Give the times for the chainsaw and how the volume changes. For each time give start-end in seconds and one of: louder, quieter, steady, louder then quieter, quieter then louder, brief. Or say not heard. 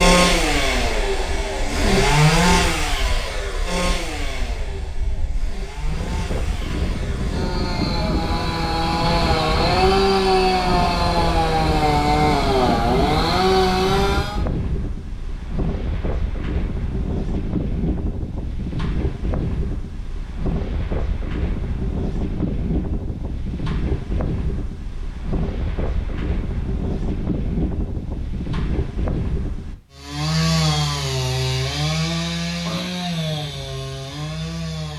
0.0-14.4 quieter then louder
29.9-34.9 quieter.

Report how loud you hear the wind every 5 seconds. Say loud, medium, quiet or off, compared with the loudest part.
quiet, loud, loud, loud, loud, loud, off.